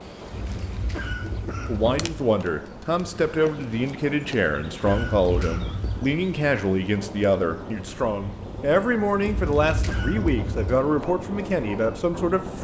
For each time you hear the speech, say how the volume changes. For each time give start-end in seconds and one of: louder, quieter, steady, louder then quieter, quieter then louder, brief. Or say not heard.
1.6-12.5 steady.